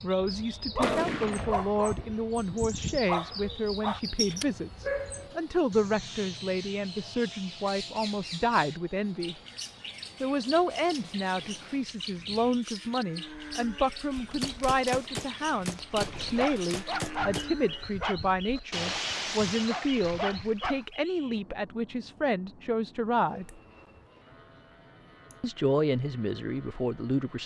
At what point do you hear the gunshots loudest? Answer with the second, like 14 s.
1 s.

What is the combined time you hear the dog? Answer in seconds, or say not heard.
10 s.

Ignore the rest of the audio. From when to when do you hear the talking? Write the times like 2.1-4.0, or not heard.
0.0-9.3, 10.2-23.6, 25.4-27.4.